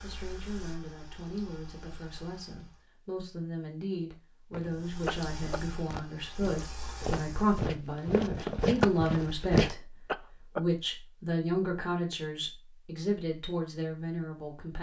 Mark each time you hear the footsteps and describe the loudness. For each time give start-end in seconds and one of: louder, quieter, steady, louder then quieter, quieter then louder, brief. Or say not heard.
4.5-9.8 louder.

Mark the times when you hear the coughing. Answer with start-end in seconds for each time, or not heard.
5.0-5.6, 10.1-10.6.